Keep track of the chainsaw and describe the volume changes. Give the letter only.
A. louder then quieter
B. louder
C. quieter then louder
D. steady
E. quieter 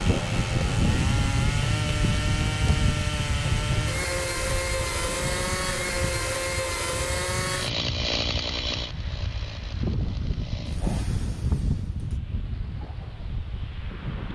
E.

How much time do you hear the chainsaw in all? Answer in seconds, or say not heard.
12 s.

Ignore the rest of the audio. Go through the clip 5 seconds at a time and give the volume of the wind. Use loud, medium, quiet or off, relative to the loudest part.
loud, medium, loud.